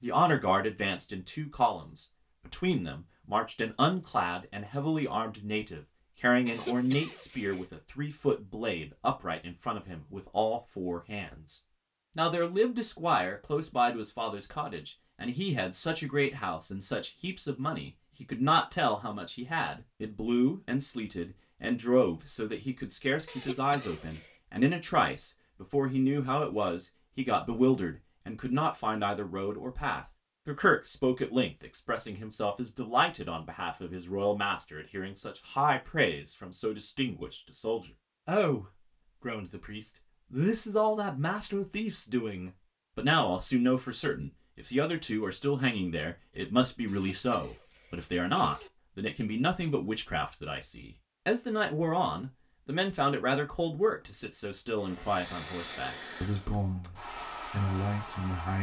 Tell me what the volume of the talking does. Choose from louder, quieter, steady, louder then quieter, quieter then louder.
steady.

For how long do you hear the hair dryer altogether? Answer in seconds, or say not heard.
4 s.